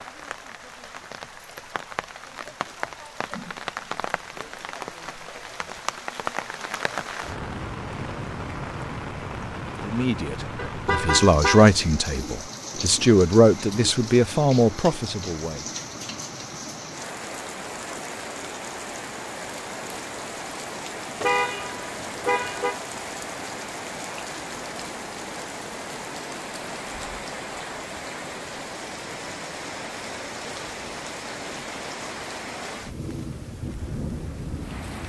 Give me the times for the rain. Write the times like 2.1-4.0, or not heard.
0.0-35.0.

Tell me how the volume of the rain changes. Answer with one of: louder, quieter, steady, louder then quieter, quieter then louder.
steady.